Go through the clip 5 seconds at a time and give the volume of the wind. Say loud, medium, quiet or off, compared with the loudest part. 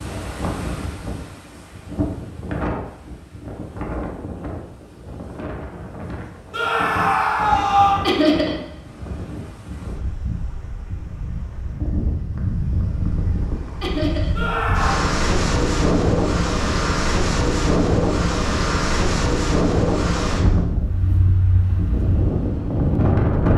medium, quiet, medium, loud, loud.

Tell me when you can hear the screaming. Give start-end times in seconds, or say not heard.
6.5-8.1, 14.3-15.1.